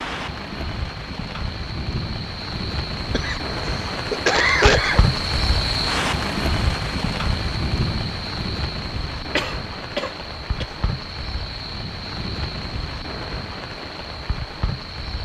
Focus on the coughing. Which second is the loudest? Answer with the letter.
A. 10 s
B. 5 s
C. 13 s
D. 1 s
B.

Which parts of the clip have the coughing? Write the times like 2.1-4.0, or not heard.
3.1-5.0, 9.3-10.7.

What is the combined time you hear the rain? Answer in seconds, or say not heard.
15 s.